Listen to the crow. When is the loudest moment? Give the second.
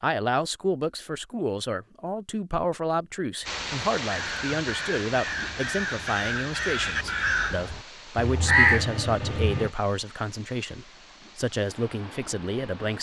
9 s.